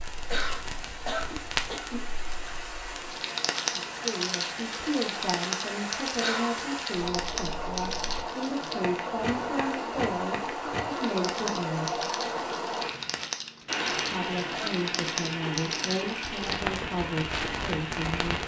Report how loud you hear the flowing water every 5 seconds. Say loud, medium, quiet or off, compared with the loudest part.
medium, loud, loud, loud.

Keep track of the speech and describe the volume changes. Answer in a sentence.
The volume of the speech stays about the same.